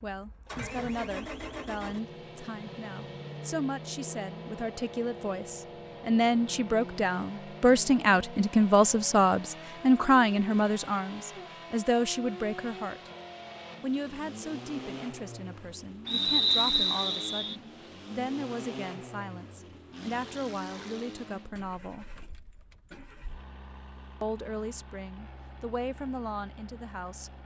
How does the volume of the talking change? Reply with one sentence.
The volume of the talking goes up, then down.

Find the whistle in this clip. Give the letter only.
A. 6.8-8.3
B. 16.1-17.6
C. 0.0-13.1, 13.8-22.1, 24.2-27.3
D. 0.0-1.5
B.